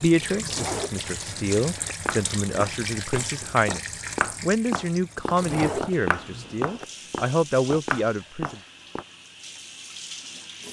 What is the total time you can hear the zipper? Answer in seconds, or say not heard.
3 s.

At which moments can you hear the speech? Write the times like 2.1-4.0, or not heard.
0.0-8.6.